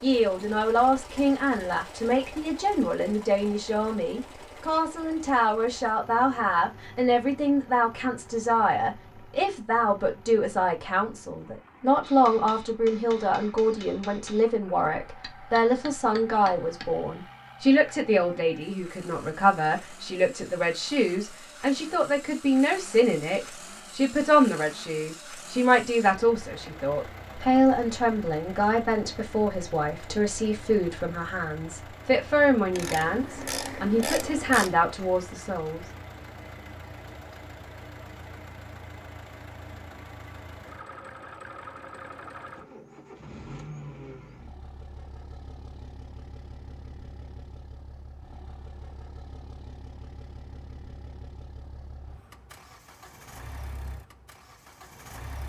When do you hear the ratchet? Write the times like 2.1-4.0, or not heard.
32.7-34.8.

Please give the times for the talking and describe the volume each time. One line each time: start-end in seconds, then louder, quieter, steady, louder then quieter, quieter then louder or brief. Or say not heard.
0.0-35.9 steady.